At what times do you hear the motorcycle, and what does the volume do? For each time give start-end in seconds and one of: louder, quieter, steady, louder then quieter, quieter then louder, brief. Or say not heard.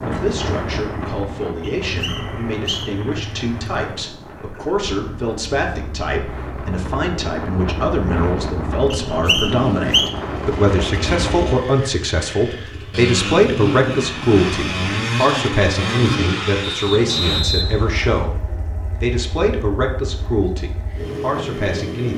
0.0-22.1 louder then quieter.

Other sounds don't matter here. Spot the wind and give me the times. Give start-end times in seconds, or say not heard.
0.0-11.3.